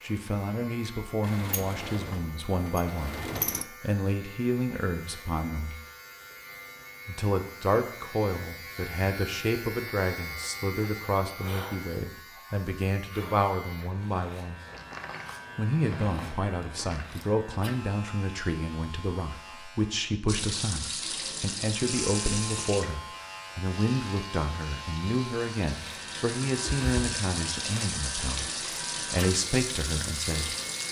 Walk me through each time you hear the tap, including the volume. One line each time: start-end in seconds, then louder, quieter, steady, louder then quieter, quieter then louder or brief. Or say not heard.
20.2-30.8 quieter then louder.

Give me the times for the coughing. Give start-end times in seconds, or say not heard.
not heard.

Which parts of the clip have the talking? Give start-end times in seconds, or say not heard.
0.0-5.8, 7.0-14.6, 15.6-30.6.